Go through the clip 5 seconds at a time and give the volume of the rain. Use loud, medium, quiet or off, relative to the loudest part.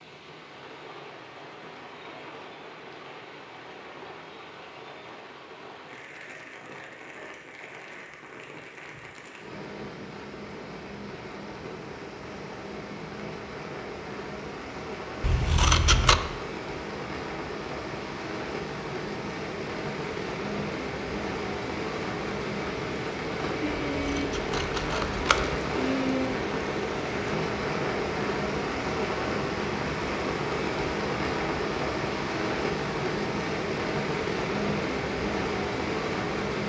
quiet, quiet, medium, medium, loud, loud, loud, loud.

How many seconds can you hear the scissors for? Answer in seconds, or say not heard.
3 s.